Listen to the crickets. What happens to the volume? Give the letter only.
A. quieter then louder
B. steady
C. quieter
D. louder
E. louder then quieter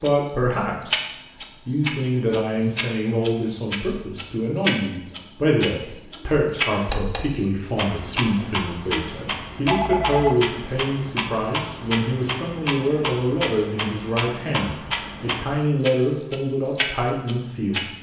B.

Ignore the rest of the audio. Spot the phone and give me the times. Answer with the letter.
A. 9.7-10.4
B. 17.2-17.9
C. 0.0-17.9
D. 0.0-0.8
A.